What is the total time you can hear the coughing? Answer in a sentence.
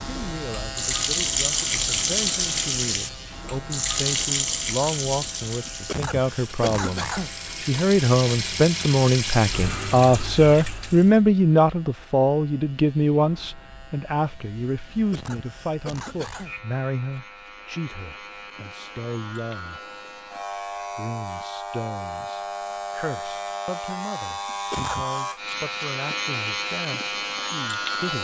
The coughing can be heard for 4 seconds in total.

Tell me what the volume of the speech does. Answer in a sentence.
The volume of the speech goes up, then down.